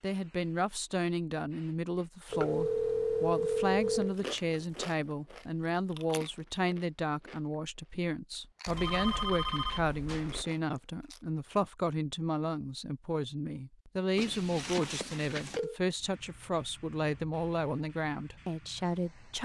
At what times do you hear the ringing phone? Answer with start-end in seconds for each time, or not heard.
2.3-4.2, 8.7-10.4, 14.2-15.8.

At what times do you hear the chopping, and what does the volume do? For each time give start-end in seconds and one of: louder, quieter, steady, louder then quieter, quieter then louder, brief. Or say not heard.
not heard.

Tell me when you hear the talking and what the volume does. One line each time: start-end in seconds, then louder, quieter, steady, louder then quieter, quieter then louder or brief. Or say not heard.
0.0-19.4 steady.